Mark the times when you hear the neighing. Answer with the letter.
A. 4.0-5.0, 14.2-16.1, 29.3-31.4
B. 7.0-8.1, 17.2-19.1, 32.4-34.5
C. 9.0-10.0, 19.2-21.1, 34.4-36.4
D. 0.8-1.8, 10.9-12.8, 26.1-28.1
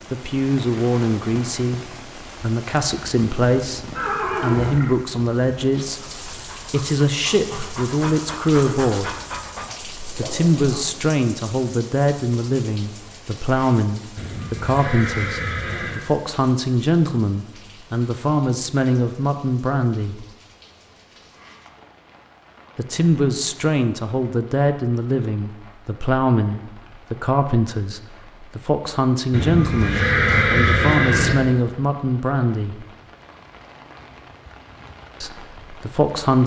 A.